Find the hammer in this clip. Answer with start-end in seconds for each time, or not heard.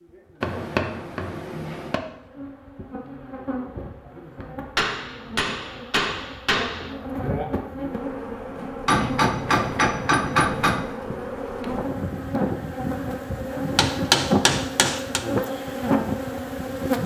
0.4-2.0, 4.8-7.0, 8.8-10.8, 13.8-15.2.